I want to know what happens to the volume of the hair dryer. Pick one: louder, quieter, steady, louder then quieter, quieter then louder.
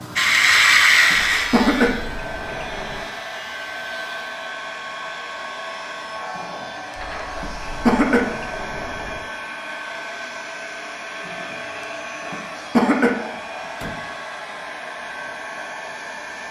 steady.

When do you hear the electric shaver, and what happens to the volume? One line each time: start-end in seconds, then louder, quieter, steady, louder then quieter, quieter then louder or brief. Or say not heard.
0.0-4.3 quieter.